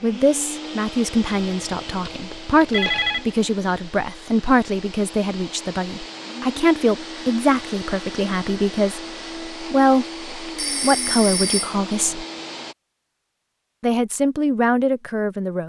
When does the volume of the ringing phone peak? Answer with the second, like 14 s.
3 s.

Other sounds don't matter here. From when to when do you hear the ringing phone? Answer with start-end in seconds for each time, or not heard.
1.3-3.2, 10.6-11.8.